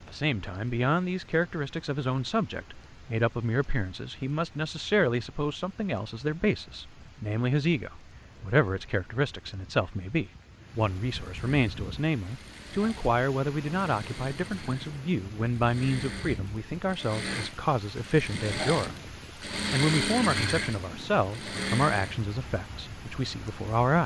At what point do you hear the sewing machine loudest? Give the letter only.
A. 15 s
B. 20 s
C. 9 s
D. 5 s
B.